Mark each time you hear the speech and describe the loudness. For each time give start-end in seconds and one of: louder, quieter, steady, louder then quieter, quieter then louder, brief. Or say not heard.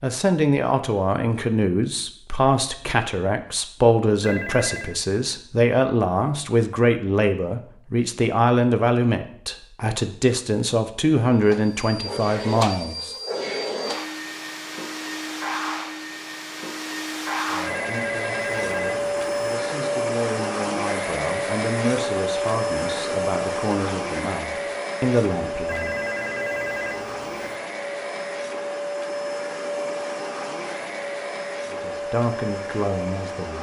0.0-13.2 steady
17.3-26.0 louder
31.7-33.5 brief.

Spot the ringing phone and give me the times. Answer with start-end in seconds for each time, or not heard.
4.2-5.0, 17.6-19.4, 25.6-27.6.